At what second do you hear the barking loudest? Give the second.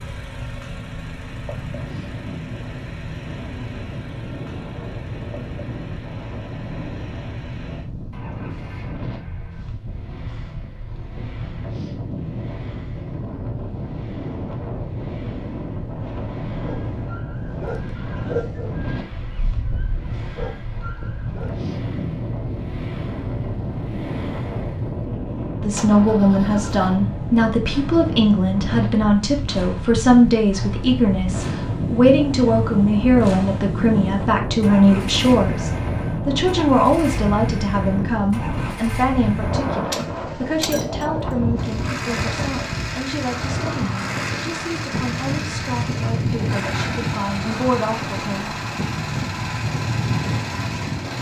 18 s.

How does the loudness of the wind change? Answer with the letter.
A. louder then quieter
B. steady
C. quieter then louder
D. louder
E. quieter
D.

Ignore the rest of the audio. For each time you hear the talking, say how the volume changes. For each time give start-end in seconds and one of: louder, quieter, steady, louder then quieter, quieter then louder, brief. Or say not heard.
25.6-48.5 quieter.